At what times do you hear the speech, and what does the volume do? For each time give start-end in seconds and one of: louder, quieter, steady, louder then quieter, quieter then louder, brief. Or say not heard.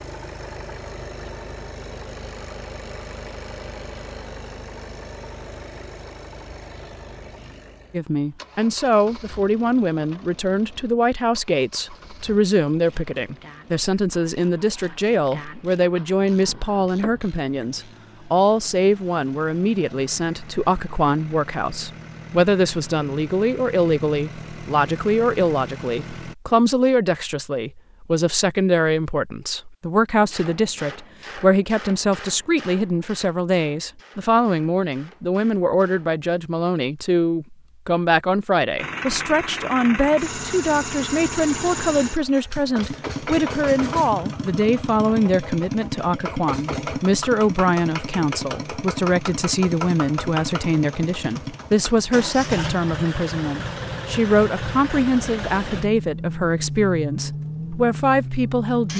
7.9-58.9 steady.